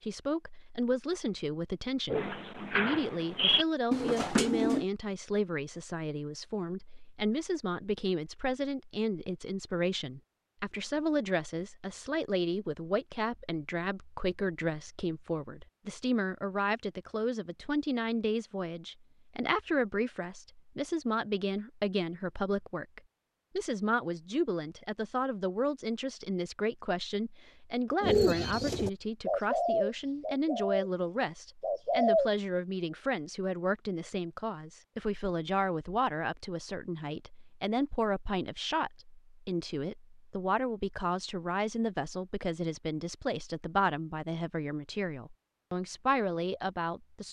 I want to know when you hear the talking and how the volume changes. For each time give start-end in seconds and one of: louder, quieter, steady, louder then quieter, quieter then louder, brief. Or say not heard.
0.0-47.2 steady.